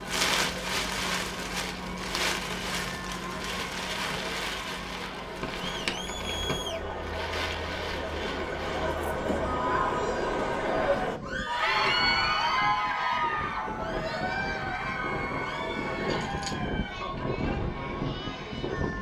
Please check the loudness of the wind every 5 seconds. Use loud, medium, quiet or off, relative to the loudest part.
loud, medium, medium, loud.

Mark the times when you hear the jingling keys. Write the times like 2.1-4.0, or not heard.
5.4-6.6, 15.9-16.7.